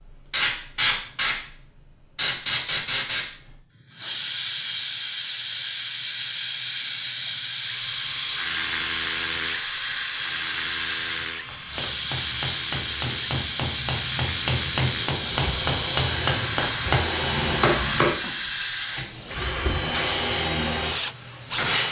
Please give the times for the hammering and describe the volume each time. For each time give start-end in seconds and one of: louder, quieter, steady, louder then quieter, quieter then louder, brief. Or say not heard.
11.4-18.1 louder.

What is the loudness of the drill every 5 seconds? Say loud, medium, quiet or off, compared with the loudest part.
off, loud, medium, loud, loud.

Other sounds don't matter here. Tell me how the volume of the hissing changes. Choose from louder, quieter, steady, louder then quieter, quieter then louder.
steady.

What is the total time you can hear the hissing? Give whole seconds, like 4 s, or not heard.
22 s.